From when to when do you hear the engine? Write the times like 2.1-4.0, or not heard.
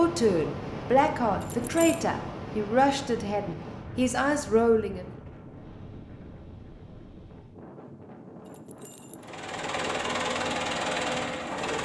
9.2-11.8.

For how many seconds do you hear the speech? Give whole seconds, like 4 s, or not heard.
5 s.